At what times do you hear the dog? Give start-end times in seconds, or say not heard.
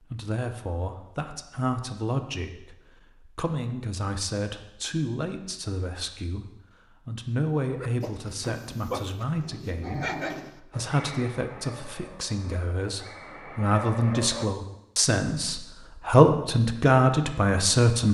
7.7-14.5.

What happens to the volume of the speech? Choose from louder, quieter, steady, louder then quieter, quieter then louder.
louder.